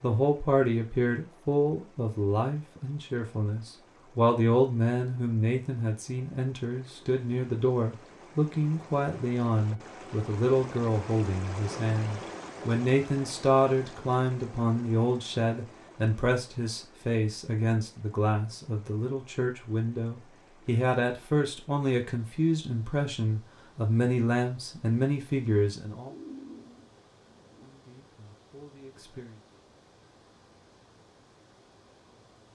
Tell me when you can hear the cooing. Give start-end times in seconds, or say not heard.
26.1-27.7.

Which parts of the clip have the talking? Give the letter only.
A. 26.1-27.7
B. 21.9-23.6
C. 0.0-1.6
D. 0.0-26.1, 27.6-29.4
D.